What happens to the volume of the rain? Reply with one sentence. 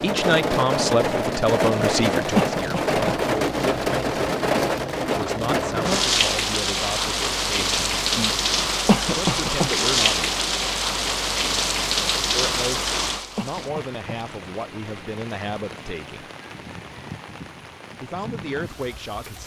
The loudness of the rain goes down.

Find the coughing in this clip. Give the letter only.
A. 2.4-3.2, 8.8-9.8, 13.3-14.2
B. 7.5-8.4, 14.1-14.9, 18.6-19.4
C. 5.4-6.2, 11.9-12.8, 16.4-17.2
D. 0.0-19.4
A.